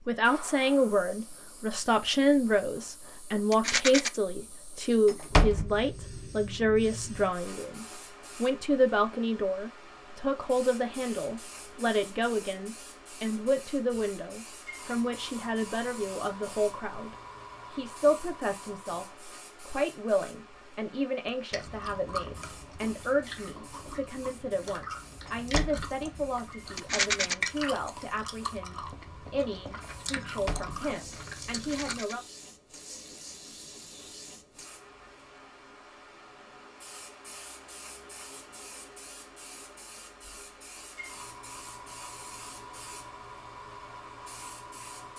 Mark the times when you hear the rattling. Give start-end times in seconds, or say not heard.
3.5-4.1, 26.8-27.4, 31.6-32.1.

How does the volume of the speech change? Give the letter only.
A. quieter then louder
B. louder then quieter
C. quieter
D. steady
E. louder
C.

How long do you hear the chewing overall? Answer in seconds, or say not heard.
11 s.